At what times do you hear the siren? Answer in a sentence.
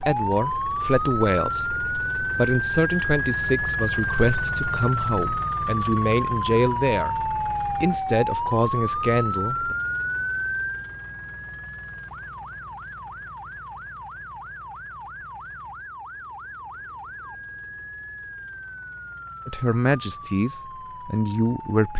You can hear the siren from 0.0 to 21.9 s.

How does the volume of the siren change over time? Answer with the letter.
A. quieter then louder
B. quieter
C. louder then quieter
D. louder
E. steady
B.